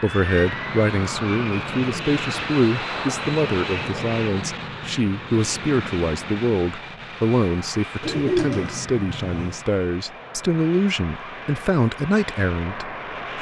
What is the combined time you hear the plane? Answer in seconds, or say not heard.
13 s.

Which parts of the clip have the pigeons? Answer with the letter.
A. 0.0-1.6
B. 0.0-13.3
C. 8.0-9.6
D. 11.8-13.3
C.